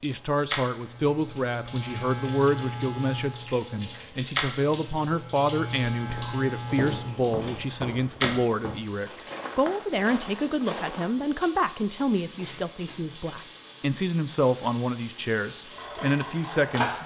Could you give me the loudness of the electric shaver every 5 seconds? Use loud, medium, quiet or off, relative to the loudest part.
loud, loud, off, off.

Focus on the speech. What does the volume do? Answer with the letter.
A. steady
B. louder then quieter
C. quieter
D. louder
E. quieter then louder
A.